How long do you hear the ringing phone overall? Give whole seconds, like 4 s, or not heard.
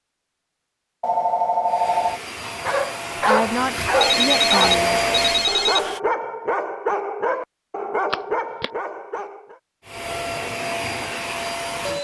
4 s.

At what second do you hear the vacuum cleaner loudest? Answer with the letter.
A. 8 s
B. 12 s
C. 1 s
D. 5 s
D.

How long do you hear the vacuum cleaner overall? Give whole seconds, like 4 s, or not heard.
6 s.